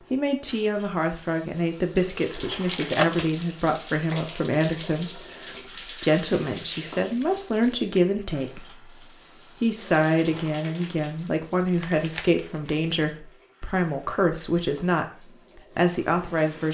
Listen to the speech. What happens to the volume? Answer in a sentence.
The loudness of the speech stays about the same.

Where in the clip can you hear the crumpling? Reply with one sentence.
The crumpling can be heard from 2.7 to 3.4 s, from 6.3 to 8.6 s and from 11.7 to 13.2 s.